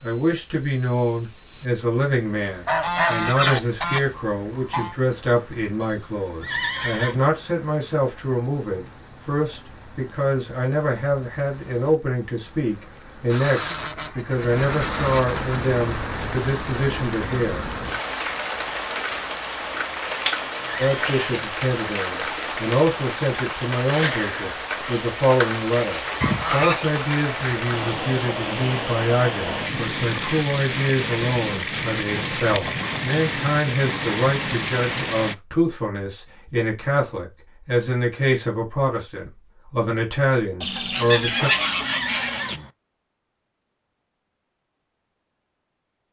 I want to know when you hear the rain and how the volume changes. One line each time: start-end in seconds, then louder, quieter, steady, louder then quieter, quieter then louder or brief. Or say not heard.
0.0-35.4 louder.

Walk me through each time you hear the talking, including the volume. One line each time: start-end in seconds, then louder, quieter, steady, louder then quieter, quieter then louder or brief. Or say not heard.
0.0-17.6 steady
20.8-41.5 steady.